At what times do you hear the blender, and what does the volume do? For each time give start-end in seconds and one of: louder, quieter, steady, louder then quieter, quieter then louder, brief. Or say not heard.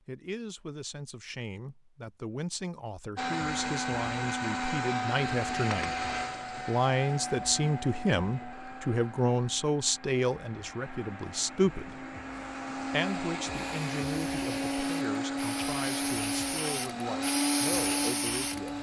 3.1-18.7 quieter then louder.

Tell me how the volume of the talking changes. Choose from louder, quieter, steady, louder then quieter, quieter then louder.
louder then quieter.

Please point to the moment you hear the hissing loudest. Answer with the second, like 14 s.
18 s.